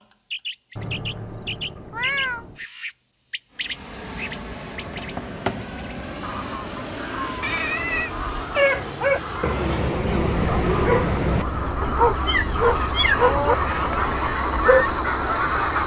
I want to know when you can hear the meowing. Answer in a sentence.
The meowing can be heard from 0.8 to 2.6 s, from 7.4 to 8.2 s and from 12.2 to 13.3 s.